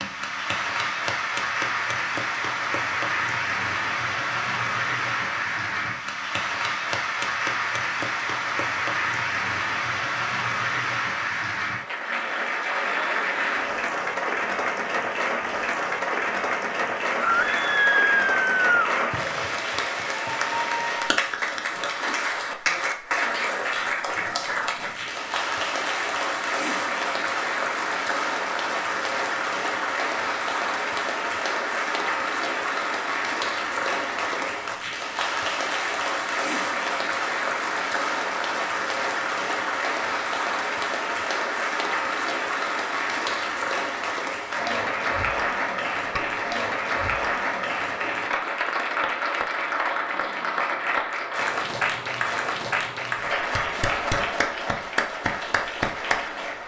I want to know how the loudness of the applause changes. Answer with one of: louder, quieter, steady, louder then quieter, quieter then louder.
steady.